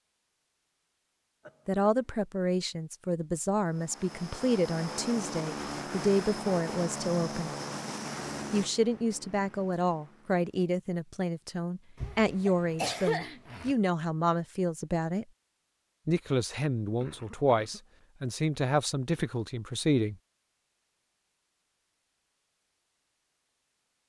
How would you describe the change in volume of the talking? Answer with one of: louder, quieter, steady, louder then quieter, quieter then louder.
steady.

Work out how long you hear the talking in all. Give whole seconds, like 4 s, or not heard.
17 s.